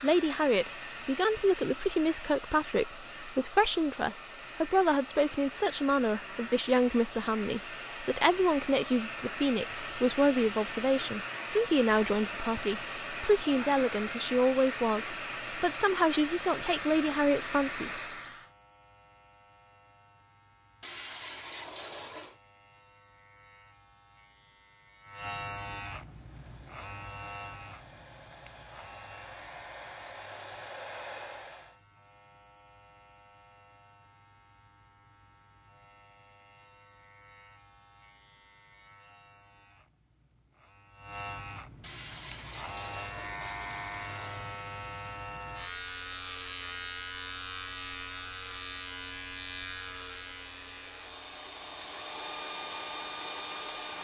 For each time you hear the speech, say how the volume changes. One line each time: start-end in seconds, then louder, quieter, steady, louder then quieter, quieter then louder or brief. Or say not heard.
0.0-17.9 steady.